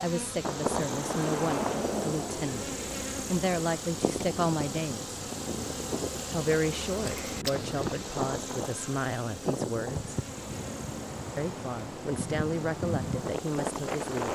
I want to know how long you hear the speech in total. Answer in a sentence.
You can hear the speech for 12 seconds altogether.